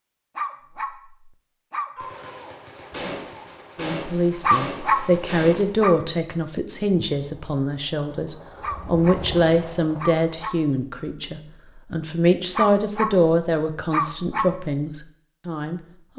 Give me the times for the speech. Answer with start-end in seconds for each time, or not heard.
3.8-16.1.